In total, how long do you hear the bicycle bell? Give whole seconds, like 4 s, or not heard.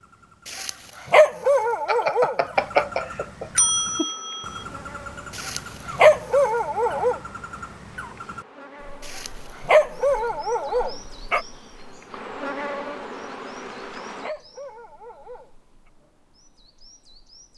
3 s.